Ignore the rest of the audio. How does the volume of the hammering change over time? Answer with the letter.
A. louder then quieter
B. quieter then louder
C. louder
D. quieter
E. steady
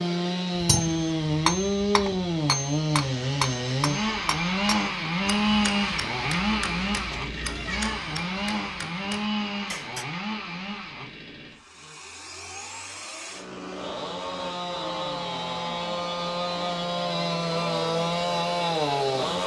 D.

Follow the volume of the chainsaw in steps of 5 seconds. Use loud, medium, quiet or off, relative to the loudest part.
loud, loud, medium, loud.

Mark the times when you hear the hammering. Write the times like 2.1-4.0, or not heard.
0.6-10.1.